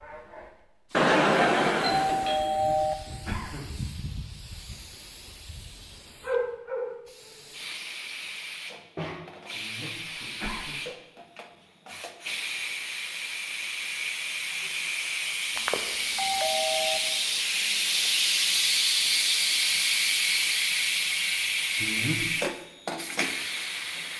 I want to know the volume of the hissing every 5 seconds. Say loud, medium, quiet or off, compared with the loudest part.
quiet, medium, medium, loud, loud.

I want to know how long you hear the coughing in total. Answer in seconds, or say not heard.
3 s.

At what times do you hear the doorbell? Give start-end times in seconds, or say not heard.
0.9-3.0, 15.6-17.0.